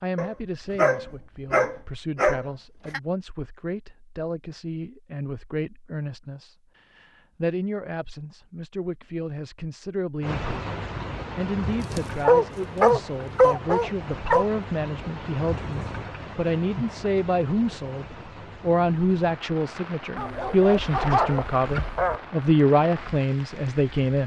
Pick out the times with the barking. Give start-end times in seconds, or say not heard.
0.1-3.0, 11.8-14.4, 20.1-22.2.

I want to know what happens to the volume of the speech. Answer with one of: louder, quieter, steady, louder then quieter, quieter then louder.
louder.